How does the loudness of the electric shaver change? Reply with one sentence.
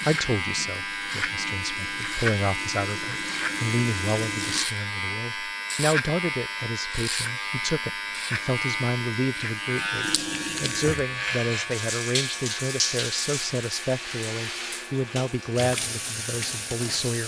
The volume of the electric shaver goes down.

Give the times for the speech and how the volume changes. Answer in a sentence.
You can hear the speech from 0.1 to 17.2 s, at a steady volume.